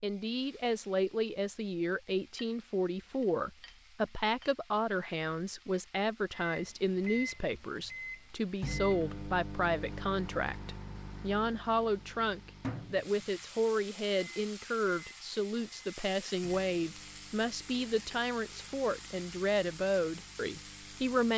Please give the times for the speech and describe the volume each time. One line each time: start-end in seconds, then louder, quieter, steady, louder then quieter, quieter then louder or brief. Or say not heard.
0.0-21.3 steady.